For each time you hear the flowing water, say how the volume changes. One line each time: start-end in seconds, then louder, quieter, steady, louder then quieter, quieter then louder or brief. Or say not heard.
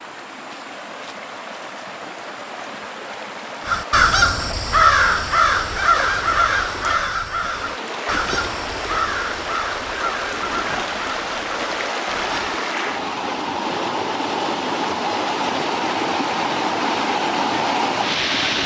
0.0-18.6 louder.